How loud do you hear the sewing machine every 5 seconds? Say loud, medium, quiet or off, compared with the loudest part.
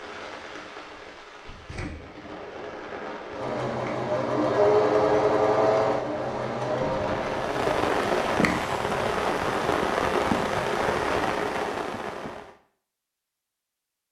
loud, loud, off.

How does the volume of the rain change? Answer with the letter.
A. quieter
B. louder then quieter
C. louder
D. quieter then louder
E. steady
C.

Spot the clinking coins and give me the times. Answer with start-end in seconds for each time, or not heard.
not heard.